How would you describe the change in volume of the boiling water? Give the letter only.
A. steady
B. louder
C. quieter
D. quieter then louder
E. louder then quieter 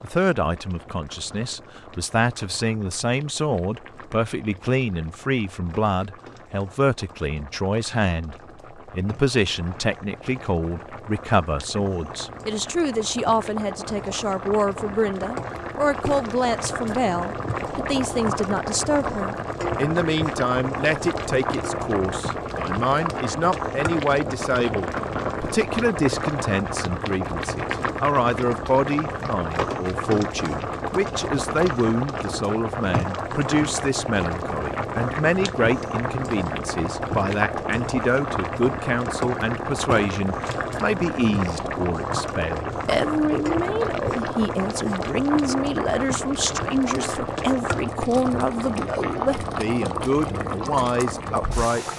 B.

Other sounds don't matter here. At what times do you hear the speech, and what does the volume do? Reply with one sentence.
You can hear the speech from 0.0 to 51.9 s, at a steady volume.